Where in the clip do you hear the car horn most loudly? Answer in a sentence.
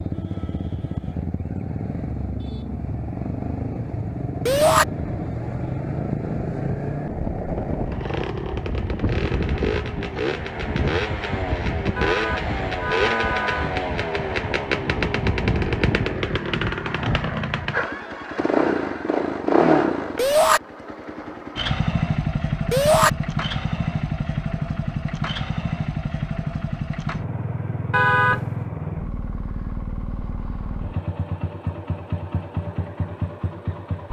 The volume of the car horn peaks at 28 seconds.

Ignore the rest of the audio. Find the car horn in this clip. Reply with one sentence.
The car horn can be heard from 11.9 to 13.8 s and from 27.9 to 28.6 s.